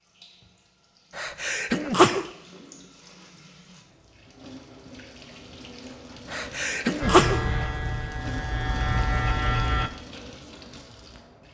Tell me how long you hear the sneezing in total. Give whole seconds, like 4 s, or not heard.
2 s.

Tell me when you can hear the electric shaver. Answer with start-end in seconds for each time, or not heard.
7.0-9.9.